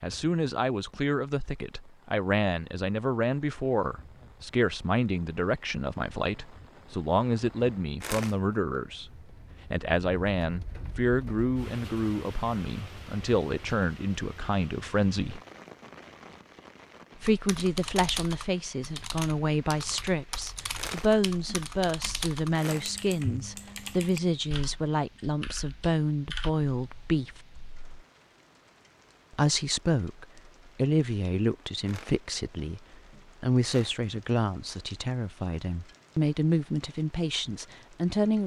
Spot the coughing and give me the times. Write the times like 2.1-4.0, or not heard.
not heard.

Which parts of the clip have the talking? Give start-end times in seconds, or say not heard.
0.0-15.4, 17.1-27.4, 29.3-38.4.